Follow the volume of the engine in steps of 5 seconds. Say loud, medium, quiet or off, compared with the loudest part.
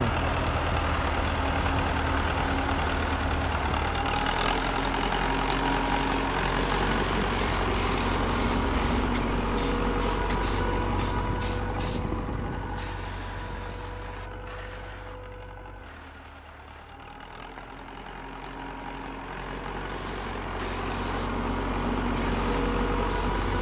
loud, loud, medium, quiet, loud.